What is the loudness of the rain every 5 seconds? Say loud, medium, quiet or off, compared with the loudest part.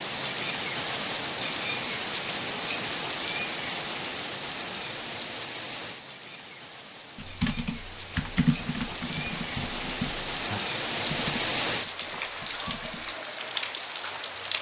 loud, medium, loud.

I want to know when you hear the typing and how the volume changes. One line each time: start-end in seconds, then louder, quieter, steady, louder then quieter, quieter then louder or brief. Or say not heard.
7.2-13.2 quieter.